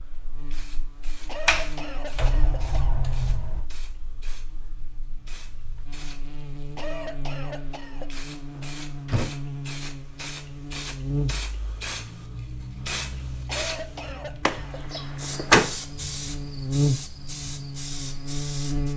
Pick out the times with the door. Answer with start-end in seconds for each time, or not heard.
1.4-3.6, 8.6-9.3, 14.4-15.7.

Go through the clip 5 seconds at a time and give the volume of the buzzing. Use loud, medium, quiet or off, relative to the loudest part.
quiet, medium, medium, loud.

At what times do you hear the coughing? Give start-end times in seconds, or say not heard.
1.2-3.0, 6.8-8.1, 13.4-15.2.